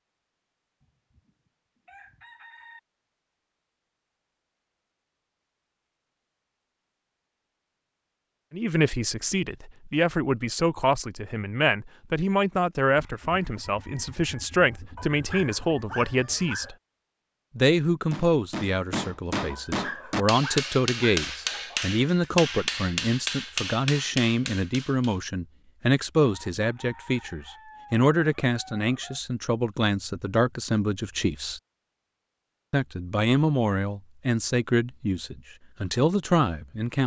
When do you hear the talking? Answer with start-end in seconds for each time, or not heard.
8.5-16.8, 17.6-31.6, 32.7-37.0.